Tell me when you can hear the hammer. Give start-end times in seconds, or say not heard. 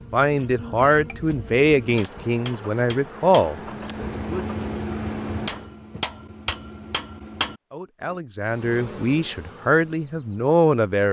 0.9-8.2.